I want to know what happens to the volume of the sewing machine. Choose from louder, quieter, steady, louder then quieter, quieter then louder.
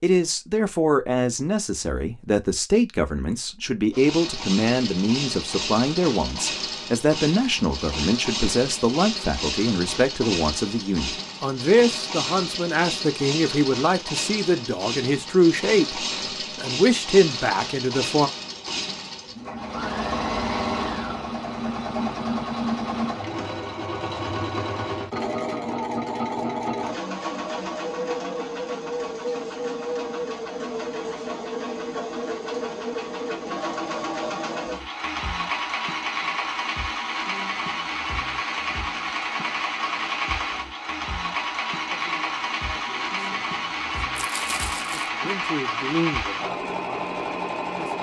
steady.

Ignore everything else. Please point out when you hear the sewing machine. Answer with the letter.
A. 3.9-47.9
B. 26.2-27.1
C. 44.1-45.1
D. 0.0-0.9
A.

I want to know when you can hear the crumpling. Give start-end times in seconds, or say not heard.
44.1-45.1.